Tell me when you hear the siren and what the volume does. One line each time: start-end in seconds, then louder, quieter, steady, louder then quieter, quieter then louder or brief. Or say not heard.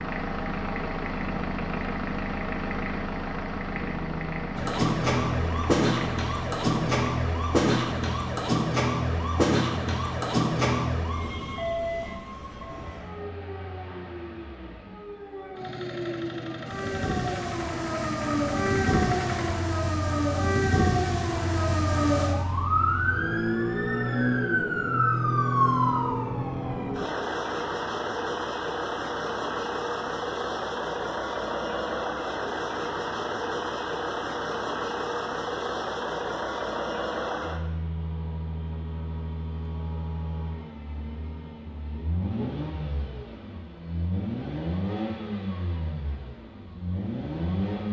4.5-26.9 quieter then louder.